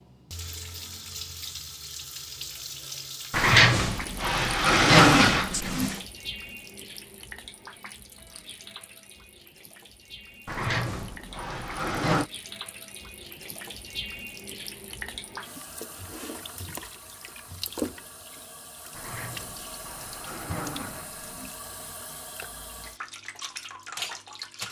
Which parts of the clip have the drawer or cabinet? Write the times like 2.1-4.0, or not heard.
3.3-6.0, 10.4-12.3, 18.9-21.6.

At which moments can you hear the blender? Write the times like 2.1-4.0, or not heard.
not heard.